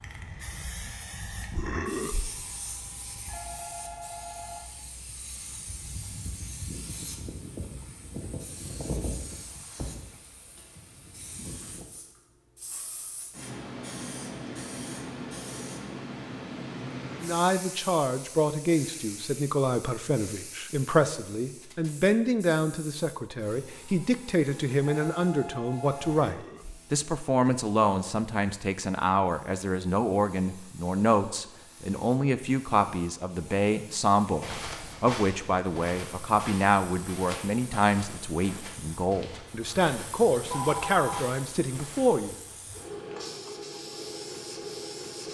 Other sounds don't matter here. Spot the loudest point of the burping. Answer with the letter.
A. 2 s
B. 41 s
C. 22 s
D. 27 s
A.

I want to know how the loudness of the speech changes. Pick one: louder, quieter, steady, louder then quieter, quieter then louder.
steady.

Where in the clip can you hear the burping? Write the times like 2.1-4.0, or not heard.
1.5-2.4, 26.2-26.9.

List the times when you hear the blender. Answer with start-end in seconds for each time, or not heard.
not heard.